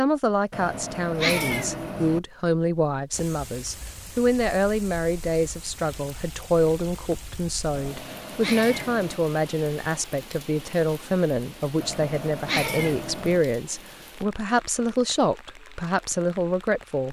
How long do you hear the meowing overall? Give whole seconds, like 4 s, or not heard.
5 s.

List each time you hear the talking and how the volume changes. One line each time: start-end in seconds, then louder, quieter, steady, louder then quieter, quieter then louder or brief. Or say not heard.
0.0-17.0 steady.